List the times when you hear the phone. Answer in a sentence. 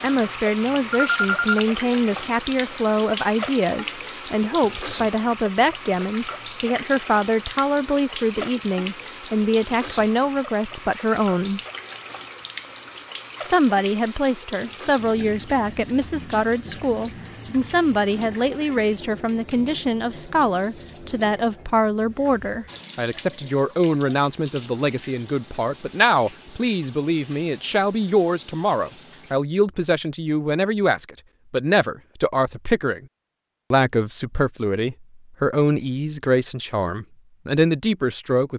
You can hear the phone from 0.9 to 1.6 s.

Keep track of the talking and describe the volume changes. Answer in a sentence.
The loudness of the talking stays about the same.